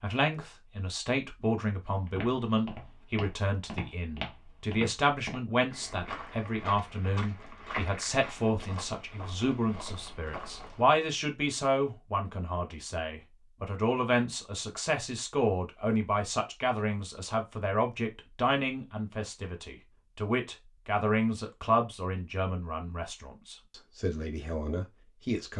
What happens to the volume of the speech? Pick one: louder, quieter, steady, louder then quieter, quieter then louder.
steady.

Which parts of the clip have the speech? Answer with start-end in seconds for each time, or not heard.
0.0-25.5.